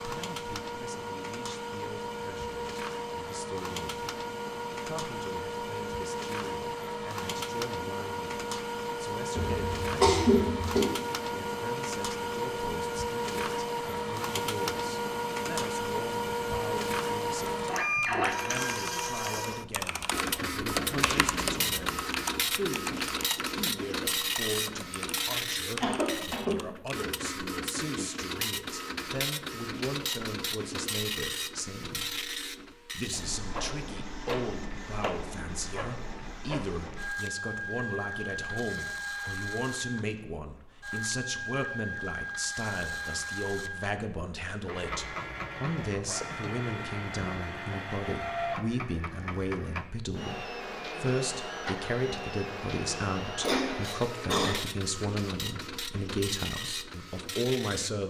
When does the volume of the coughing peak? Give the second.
10 s.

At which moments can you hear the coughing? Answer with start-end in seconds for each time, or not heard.
9.3-10.8, 25.8-26.6, 53.4-54.5.